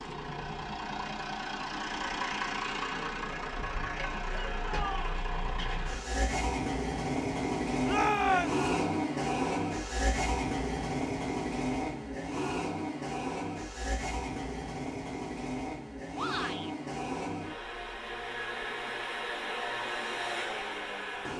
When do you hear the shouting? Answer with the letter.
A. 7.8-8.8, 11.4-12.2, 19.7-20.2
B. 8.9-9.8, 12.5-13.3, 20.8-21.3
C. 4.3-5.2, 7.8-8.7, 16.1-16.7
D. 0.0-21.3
C.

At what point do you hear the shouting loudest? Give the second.
8 s.